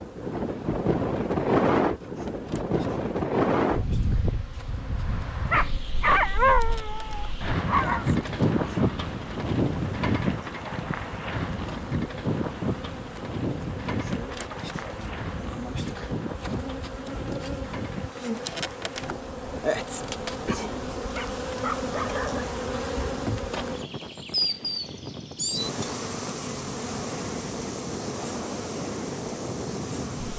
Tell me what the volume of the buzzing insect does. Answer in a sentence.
The volume of the buzzing insect goes up.